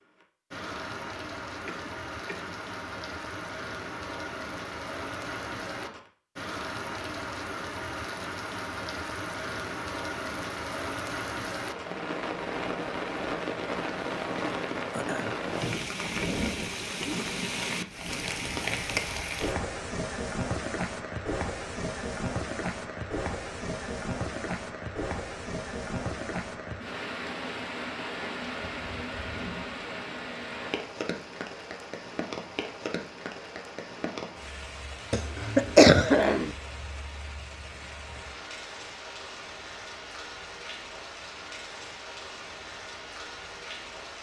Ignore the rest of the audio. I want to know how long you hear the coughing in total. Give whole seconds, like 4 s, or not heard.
3 s.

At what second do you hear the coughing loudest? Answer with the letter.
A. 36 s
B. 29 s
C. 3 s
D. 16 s
A.